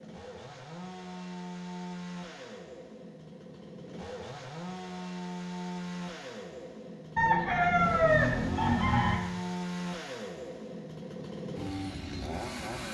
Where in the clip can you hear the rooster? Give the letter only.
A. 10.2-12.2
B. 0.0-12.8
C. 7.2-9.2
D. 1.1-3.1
C.